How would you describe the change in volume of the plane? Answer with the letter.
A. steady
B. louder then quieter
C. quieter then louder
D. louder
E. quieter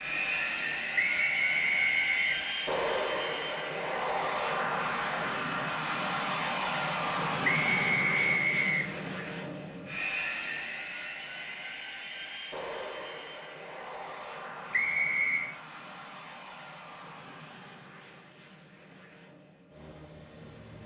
E.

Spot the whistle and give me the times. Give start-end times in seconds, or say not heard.
0.9-2.4, 7.4-8.9, 14.7-15.5.